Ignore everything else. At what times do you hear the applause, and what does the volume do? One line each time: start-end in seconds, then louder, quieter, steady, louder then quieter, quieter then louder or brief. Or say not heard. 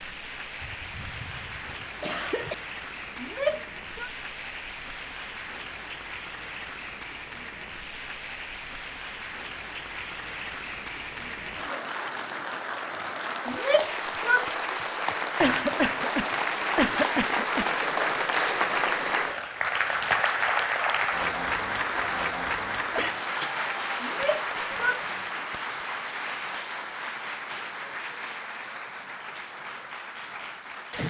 0.0-31.0 louder then quieter.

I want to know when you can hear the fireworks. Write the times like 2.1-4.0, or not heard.
not heard.